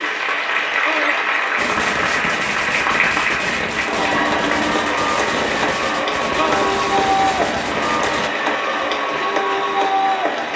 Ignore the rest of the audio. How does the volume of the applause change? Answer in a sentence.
The volume of the applause stays about the same.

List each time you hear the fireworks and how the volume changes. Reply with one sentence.
You can hear the fireworks from 1.6 to 8.3 s, at a steady volume.